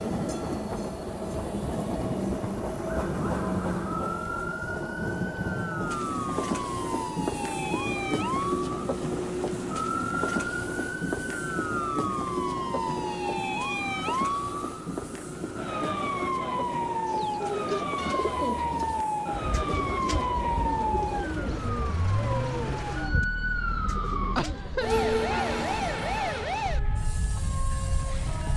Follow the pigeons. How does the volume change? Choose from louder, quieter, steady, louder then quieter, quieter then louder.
quieter.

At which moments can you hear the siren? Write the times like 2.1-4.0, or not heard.
2.5-28.5.